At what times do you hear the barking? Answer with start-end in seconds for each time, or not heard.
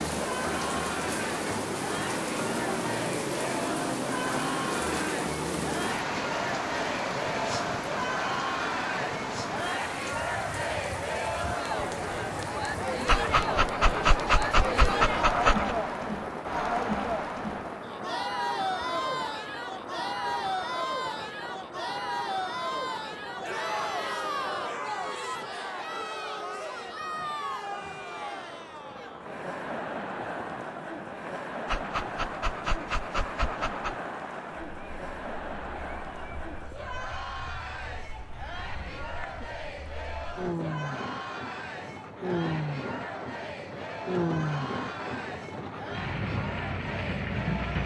13.1-15.8, 31.6-34.0.